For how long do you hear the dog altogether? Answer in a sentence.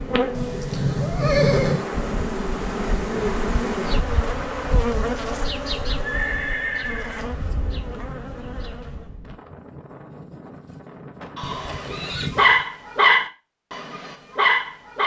The dog can be heard for 4 seconds in total.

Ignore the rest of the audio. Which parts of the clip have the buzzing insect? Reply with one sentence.
You can hear the buzzing insect from 0.0 to 9.2 s.